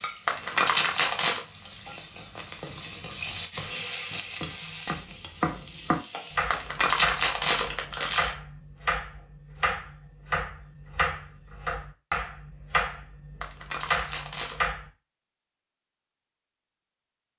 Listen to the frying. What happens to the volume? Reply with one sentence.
The volume of the frying goes up, then down.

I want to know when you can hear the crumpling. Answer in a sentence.
You can hear the crumpling from 0.2 to 1.4 s, from 6.5 to 8.3 s and from 13.4 to 14.7 s.